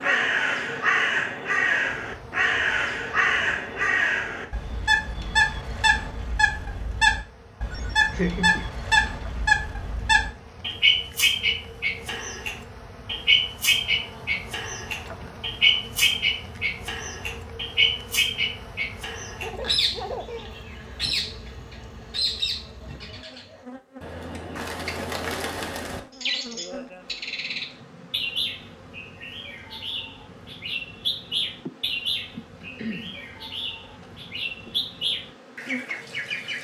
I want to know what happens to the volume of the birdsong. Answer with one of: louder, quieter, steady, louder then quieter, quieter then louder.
quieter.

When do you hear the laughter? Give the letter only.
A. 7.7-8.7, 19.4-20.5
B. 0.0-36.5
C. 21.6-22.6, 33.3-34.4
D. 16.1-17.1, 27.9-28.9
A.